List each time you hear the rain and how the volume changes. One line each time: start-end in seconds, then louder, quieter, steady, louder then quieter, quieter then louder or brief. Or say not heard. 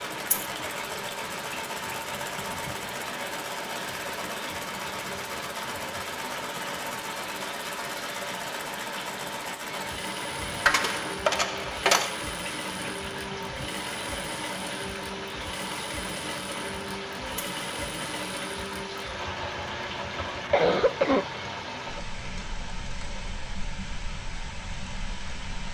0.0-25.6 steady.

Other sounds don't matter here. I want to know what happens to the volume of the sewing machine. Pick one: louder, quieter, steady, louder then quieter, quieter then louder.
steady.